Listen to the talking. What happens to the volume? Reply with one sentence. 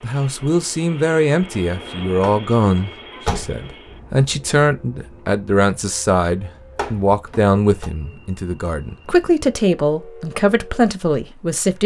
The volume of the talking stays about the same.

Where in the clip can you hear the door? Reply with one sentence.
You can hear the door from 2.2 to 3.6 s and from 6.8 to 7.9 s.